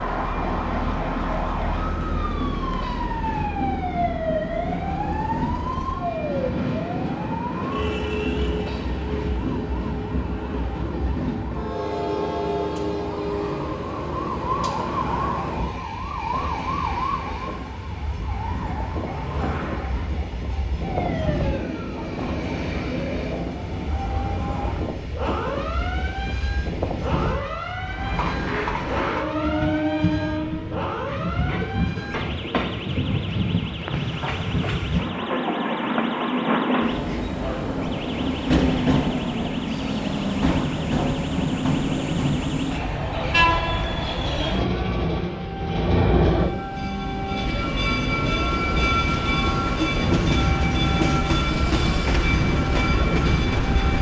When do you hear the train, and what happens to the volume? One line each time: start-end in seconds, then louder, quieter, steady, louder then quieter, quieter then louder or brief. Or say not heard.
0.0-53.9 louder.